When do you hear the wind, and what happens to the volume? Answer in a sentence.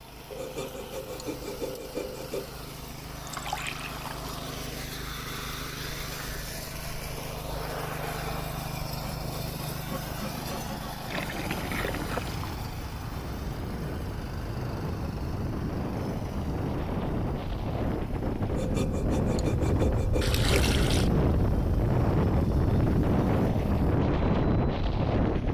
You can hear the wind from 9.2 to 25.5 s, getting louder.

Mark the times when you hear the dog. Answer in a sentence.
You can't hear the dog here.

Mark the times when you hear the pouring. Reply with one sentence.
You can hear the pouring from 3.2 to 4.3 s, from 11.1 to 12.6 s and from 20.2 to 21.1 s.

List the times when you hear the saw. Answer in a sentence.
You can hear the saw from 0.3 to 2.5 s, from 9.0 to 11.1 s and from 18.4 to 20.6 s.